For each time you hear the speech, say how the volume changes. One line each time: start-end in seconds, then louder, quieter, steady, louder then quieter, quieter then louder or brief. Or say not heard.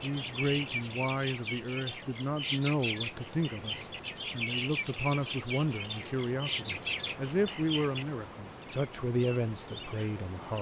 0.0-10.5 steady.